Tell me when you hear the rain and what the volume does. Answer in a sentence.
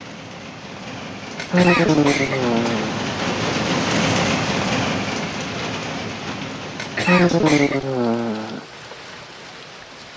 You can hear the rain from 0.0 to 10.1 s, getting louder then quieter.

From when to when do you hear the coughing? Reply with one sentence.
The coughing can be heard from 1.4 to 2.9 s and from 6.8 to 7.8 s.